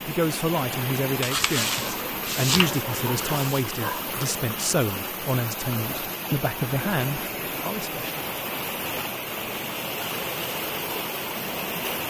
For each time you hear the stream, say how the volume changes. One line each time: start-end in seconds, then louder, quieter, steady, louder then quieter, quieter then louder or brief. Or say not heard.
0.0-12.0 steady.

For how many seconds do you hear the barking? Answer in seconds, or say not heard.
3 s.